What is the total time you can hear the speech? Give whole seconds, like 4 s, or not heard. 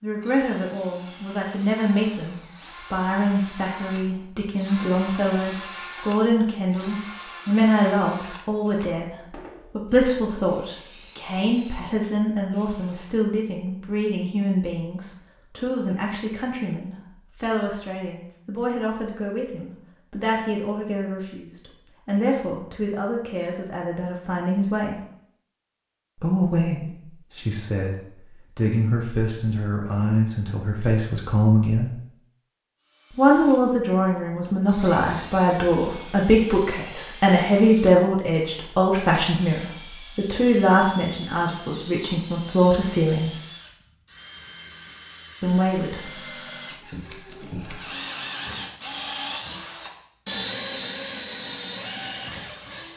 42 s.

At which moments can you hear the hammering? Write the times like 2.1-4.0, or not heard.
not heard.